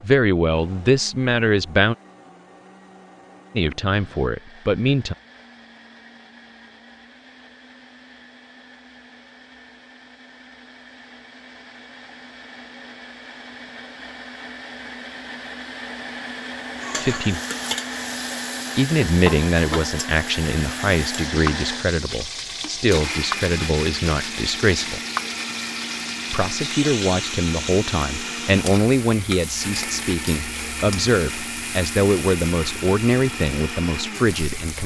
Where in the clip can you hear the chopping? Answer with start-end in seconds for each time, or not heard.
not heard.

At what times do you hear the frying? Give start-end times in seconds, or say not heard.
16.8-34.8.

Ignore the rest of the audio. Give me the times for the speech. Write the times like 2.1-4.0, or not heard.
0.0-1.9, 3.5-5.2, 16.9-17.4, 18.8-25.0, 26.3-34.8.